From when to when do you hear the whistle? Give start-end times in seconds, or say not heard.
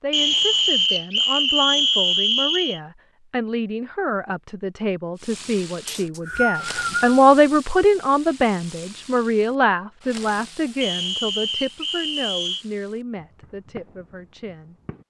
0.1-2.8, 5.8-7.2, 10.8-12.7.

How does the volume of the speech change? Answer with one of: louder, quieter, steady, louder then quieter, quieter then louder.
louder then quieter.